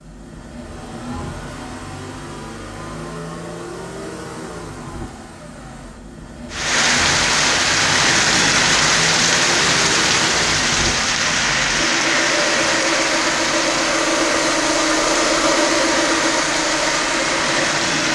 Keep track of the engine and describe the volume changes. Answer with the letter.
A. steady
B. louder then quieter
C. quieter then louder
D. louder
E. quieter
D.